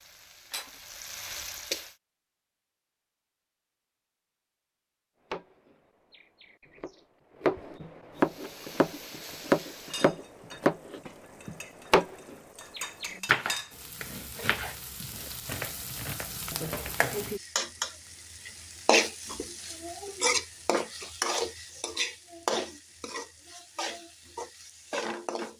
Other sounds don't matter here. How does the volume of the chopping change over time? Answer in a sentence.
The loudness of the chopping goes up, then down.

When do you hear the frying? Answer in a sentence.
You can hear the frying from 0.0 to 1.9 s and from 8.2 to 25.5 s.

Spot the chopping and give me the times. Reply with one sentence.
You can hear the chopping from 5.3 to 16.9 s.